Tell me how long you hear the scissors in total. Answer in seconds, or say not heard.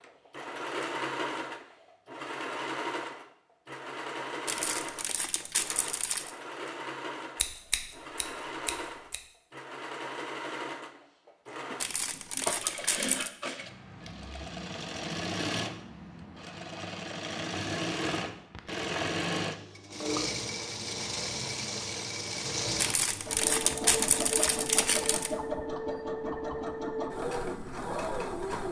2 s.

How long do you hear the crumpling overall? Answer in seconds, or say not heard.
6 s.